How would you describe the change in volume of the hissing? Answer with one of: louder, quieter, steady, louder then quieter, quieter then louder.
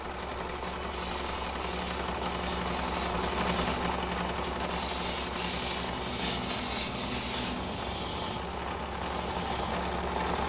louder then quieter.